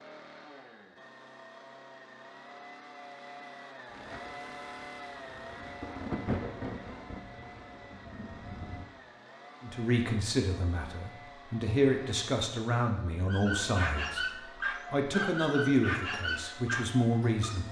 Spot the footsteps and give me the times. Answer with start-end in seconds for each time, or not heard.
not heard.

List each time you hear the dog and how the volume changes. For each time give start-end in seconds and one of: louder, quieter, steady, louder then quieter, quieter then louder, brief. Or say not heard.
13.2-17.6 steady.